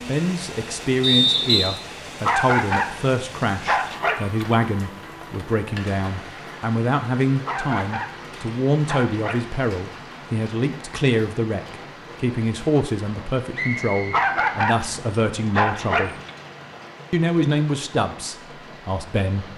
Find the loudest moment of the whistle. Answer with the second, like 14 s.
1 s.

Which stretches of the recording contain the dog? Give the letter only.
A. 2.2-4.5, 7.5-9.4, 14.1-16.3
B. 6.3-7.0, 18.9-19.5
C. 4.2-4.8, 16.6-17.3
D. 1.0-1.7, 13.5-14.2
A.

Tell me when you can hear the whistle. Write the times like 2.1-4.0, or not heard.
1.0-1.7, 13.5-14.2.